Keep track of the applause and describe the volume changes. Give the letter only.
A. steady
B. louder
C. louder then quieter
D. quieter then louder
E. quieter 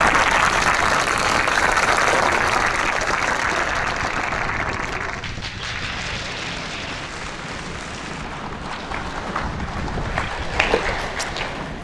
D.